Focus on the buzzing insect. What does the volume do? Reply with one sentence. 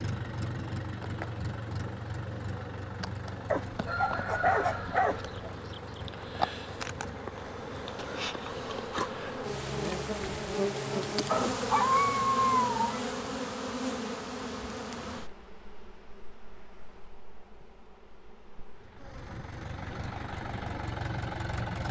The volume of the buzzing insect goes up, then down.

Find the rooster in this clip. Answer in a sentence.
You can hear the rooster from 3.9 to 5.4 s.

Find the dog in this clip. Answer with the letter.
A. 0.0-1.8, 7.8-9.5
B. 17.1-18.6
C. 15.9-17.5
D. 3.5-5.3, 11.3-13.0
D.